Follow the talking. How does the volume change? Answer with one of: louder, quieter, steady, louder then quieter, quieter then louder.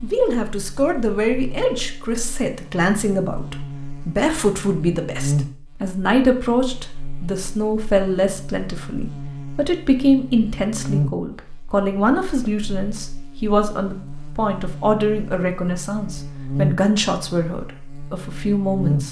steady.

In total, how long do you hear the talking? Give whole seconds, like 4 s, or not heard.
19 s.